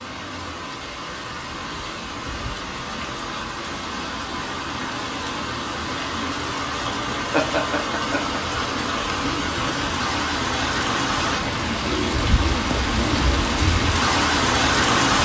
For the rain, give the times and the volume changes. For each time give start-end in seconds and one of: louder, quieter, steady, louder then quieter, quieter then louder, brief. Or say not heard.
0.0-15.2 louder.